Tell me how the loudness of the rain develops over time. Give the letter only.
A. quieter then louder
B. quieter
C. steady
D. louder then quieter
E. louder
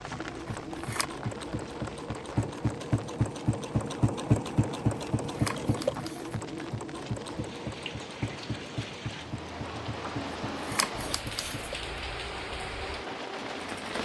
A.